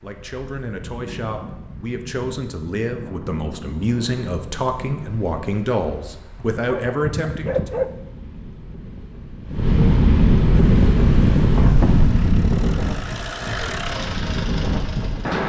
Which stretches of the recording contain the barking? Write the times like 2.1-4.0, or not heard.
6.3-7.9.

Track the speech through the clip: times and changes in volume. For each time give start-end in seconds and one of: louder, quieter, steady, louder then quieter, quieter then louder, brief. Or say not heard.
0.0-7.8 louder.